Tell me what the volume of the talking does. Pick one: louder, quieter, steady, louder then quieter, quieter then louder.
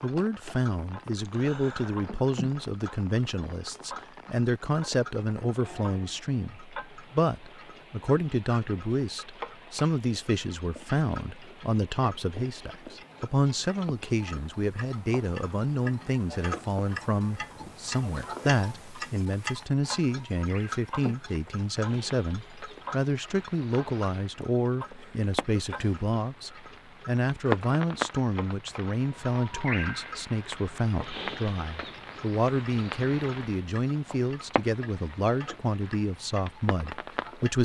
steady.